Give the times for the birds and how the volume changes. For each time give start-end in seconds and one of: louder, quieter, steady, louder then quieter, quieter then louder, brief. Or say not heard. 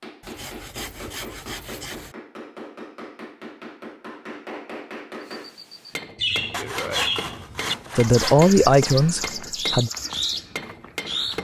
5.3-11.3 steady.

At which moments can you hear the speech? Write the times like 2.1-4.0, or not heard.
8.0-9.9.